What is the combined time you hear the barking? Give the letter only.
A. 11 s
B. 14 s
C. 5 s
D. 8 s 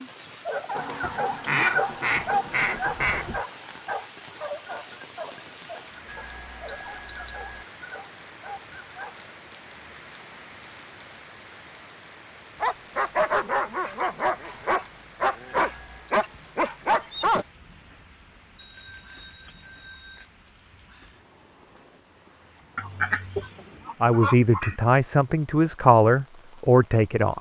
B.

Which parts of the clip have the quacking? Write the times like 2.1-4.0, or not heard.
0.8-3.5, 22.8-24.8.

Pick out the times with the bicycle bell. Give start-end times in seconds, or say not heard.
6.0-7.7, 15.4-16.2, 18.6-20.3.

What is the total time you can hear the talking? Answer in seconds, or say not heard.
3 s.